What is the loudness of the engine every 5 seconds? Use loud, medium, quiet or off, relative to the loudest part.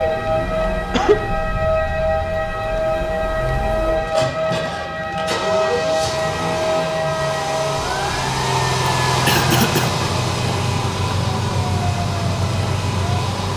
medium, loud, loud.